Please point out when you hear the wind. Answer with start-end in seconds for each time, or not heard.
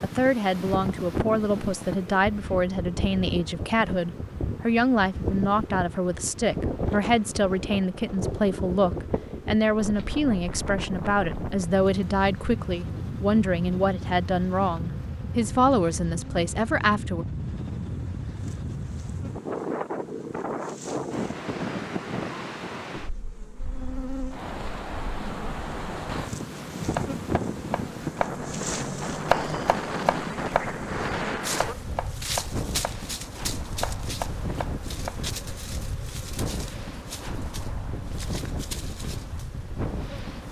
0.0-40.4.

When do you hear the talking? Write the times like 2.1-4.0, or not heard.
0.0-17.2.